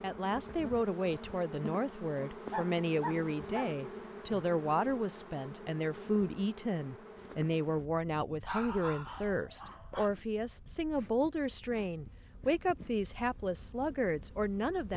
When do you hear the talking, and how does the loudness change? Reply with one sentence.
You can hear the talking from 0.0 to 14.9 s, at a steady volume.